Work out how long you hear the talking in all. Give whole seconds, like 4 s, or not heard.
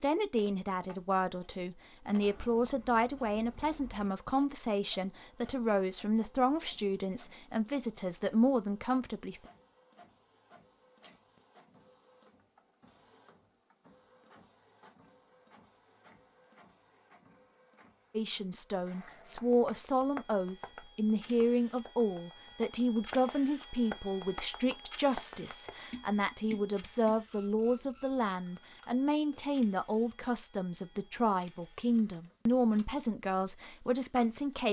26 s.